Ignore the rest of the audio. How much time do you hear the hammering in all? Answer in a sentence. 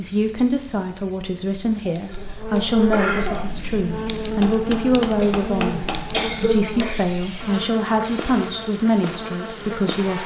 The hammering can be heard for 2 seconds in total.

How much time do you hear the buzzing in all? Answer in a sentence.
You can hear the buzzing for 8 seconds altogether.